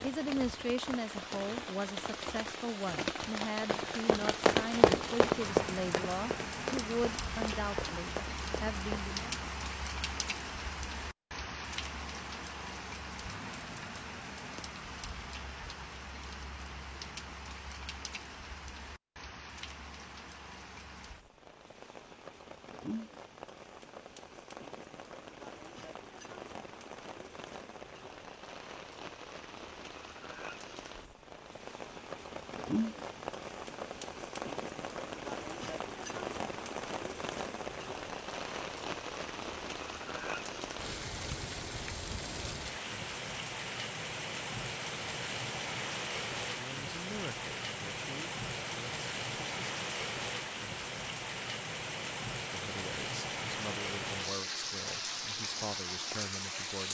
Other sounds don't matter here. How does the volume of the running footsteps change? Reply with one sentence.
The volume of the running footsteps goes down.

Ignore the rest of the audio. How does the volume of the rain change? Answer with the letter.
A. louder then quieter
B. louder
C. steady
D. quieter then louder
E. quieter
D.